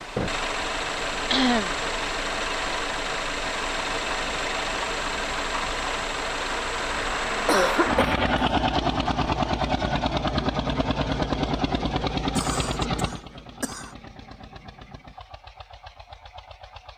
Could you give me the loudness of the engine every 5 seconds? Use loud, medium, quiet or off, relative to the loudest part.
loud, loud, loud, quiet.